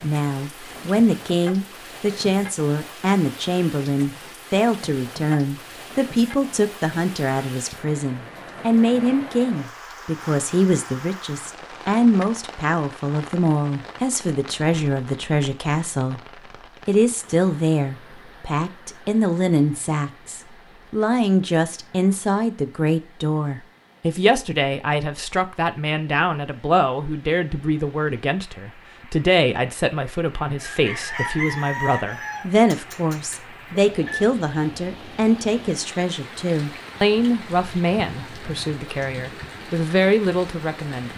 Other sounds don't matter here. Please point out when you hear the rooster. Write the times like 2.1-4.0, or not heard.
30.6-34.2.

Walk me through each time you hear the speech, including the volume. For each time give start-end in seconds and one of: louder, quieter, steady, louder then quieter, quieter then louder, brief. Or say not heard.
0.0-16.2 steady
16.9-41.1 steady.